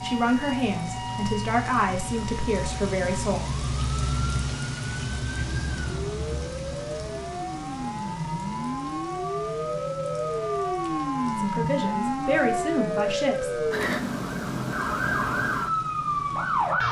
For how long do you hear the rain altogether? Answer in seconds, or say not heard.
17 s.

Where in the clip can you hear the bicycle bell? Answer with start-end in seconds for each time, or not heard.
not heard.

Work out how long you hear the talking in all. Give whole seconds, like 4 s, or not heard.
6 s.